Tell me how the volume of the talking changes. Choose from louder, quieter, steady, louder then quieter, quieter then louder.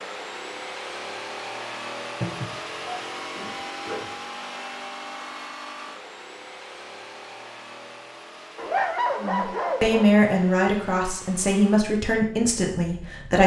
quieter.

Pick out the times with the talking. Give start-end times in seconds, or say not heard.
9.2-13.4.